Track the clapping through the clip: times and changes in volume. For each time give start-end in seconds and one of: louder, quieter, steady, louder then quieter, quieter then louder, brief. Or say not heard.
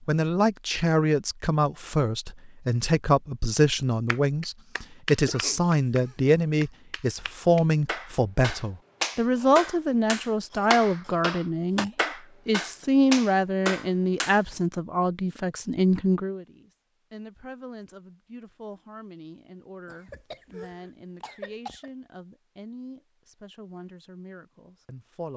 4.0-14.4 louder.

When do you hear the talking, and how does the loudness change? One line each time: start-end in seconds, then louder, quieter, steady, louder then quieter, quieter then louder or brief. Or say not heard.
0.1-25.3 quieter.